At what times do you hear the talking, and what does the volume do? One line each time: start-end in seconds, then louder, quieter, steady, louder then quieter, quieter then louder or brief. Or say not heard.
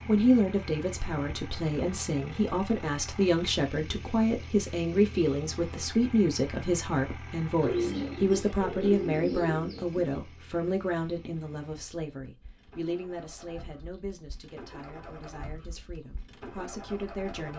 0.1-17.5 quieter.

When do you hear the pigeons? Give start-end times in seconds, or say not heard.
7.6-10.2.